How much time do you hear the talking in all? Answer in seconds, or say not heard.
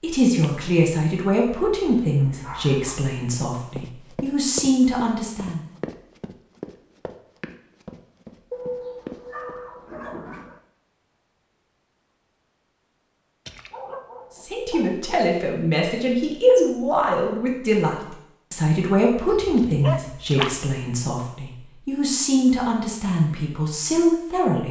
16 s.